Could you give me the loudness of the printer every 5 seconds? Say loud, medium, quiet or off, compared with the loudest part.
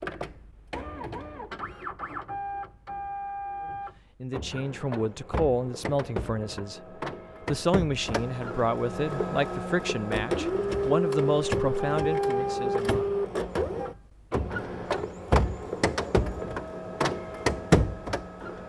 medium, medium, loud, loud.